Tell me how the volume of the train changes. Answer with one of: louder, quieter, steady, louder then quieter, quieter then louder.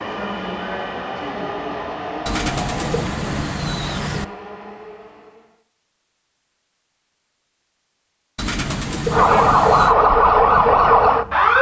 quieter.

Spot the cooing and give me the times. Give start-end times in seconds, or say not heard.
2.2-4.2, 8.3-9.9.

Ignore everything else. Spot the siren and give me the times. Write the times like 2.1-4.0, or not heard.
9.1-11.5.